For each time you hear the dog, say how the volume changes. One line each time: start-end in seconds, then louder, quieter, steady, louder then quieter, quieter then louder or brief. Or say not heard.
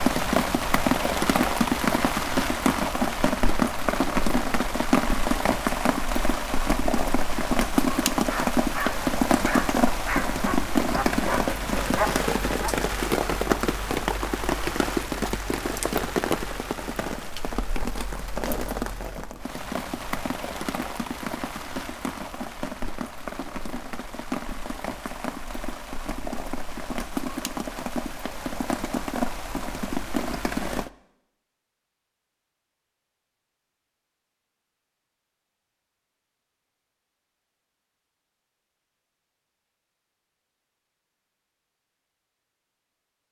8.2-12.8 steady.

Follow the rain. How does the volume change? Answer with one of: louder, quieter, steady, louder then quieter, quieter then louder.
quieter.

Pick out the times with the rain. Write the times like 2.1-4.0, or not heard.
0.0-30.9.